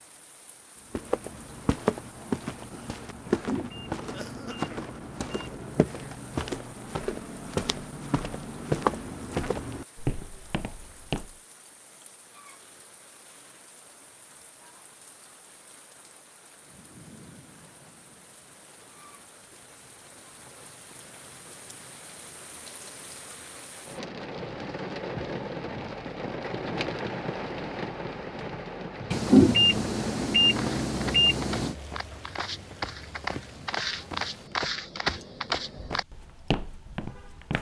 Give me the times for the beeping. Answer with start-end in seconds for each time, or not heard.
3.2-5.8, 29.1-31.8.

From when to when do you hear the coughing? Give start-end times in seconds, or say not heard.
not heard.